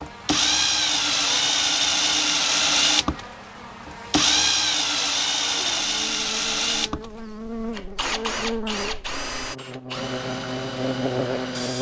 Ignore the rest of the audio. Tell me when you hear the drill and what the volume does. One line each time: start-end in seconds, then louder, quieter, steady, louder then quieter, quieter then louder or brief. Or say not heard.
0.0-11.7 quieter.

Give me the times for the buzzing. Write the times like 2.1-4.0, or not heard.
0.0-11.7.